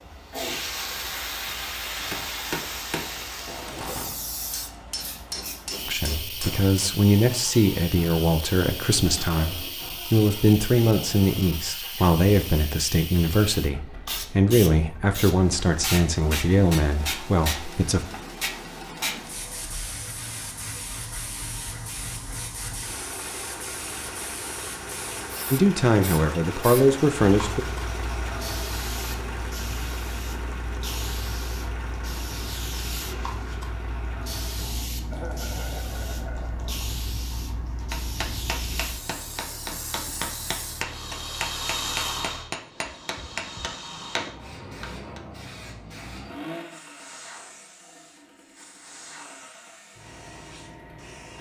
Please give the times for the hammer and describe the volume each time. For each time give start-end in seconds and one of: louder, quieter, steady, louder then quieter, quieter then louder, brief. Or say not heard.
2.1-7.0 quieter then louder
37.9-45.2 steady.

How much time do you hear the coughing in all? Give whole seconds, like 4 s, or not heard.
2 s.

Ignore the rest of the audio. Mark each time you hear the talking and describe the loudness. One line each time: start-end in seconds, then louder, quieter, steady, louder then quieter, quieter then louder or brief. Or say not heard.
5.8-18.0 steady
25.5-27.6 brief.